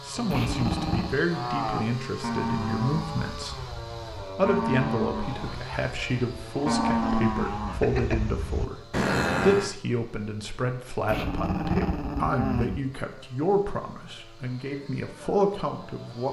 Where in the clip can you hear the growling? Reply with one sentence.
The growling can be heard from 0.3 to 1.1 s, from 6.5 to 8.2 s and from 11.1 to 12.8 s.